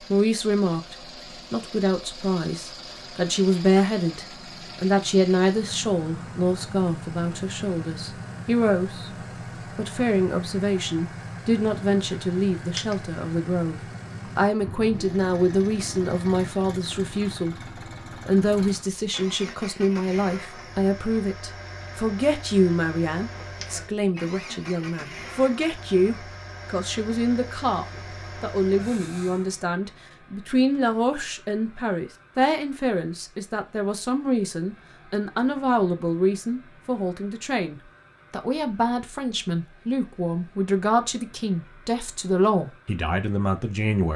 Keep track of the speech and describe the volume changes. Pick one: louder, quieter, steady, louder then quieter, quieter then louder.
steady.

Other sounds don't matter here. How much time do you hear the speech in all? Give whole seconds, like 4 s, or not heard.
43 s.